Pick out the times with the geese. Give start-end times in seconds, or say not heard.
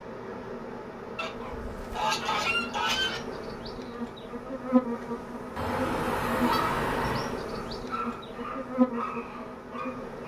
1.1-3.2, 5.5-7.4.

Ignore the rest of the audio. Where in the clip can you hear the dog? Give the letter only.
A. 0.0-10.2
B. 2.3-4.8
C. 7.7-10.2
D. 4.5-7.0
C.